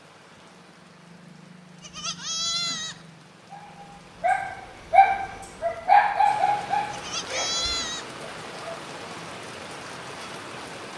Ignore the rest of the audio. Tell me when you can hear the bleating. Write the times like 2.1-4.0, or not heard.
1.8-3.0, 6.9-8.1.